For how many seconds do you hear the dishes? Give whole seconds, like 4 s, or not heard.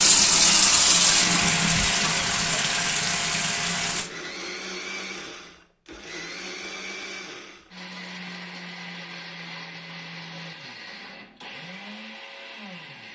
not heard.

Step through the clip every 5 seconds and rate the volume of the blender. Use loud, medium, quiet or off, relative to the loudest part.
loud, medium, medium.